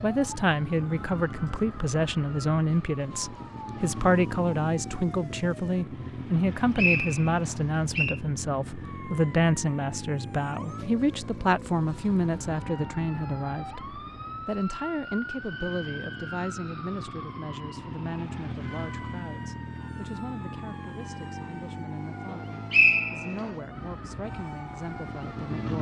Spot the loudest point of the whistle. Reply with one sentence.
The volume of the whistle peaks at 23 seconds.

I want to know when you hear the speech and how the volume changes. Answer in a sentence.
The speech can be heard from 0.0 to 25.7 s, getting quieter.